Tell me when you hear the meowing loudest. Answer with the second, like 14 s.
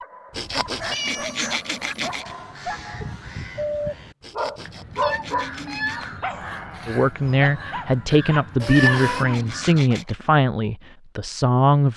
9 s.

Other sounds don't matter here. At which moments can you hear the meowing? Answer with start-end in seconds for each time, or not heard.
0.9-2.2, 5.0-6.1, 8.6-9.2.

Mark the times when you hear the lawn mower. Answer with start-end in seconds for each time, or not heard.
not heard.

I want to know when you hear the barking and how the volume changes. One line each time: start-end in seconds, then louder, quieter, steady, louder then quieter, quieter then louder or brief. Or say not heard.
0.0-10.1 louder then quieter.